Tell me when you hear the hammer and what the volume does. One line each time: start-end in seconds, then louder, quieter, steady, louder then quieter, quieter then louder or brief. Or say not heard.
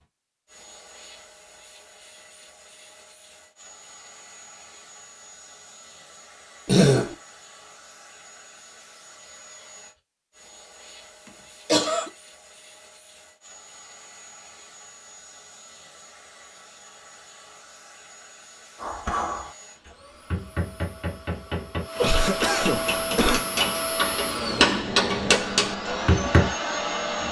18.8-19.5 brief
20.3-26.5 louder.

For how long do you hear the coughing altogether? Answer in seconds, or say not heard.
2 s.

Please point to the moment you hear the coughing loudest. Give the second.
7 s.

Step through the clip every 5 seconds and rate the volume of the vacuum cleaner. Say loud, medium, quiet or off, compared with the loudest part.
quiet, quiet, quiet, quiet, loud, loud.